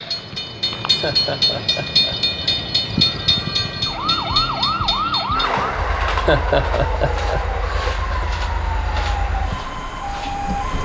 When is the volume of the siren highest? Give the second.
5 s.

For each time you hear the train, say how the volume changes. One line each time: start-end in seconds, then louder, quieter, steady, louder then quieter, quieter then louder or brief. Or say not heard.
0.0-10.8 quieter.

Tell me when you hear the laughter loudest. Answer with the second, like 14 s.
6 s.